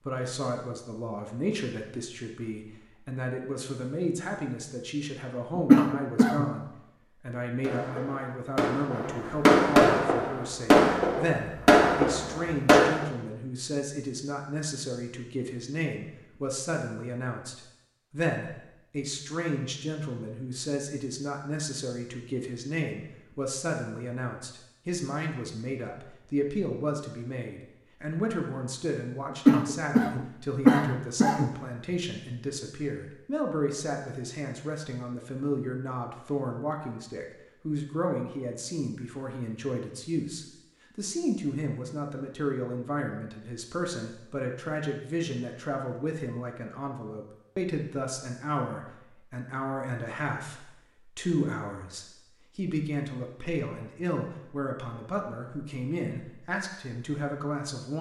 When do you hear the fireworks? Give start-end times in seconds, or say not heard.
7.6-13.1.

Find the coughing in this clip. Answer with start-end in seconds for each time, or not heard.
5.5-6.5, 29.3-31.5.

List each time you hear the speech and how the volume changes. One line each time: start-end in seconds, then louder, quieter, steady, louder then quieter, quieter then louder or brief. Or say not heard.
0.0-57.9 steady.